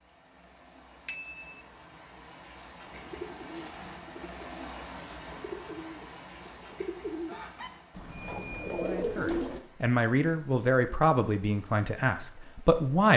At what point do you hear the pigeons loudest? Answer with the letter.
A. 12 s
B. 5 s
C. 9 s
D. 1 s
C.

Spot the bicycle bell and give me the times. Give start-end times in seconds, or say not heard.
1.1-1.6, 8.1-8.9.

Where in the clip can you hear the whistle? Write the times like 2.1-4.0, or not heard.
not heard.